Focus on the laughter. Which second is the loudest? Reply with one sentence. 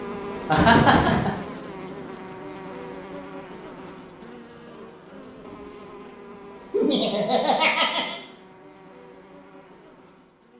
The volume of the laughter peaks at 1 second.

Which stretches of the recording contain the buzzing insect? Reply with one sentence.
The buzzing insect can be heard from 0.0 to 10.5 s.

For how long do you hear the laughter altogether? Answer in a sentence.
You can hear the laughter for 2 seconds altogether.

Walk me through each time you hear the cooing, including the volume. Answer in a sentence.
The cooing can't be heard in this clip.